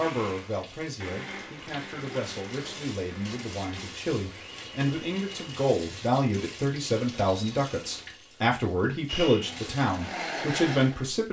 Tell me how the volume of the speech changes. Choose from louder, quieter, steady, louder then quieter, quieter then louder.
louder.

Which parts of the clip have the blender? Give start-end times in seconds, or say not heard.
0.0-5.6, 9.1-11.1.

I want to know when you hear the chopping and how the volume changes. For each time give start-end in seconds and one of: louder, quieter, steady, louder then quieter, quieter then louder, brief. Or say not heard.
not heard.